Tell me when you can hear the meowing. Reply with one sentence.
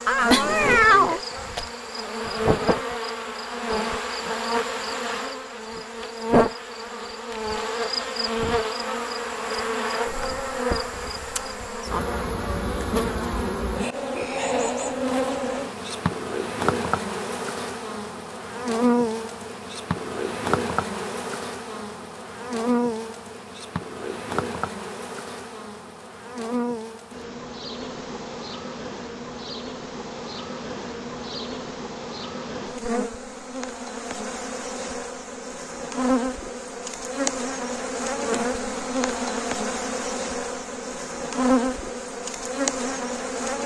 The meowing can be heard from 0.1 to 1.7 s.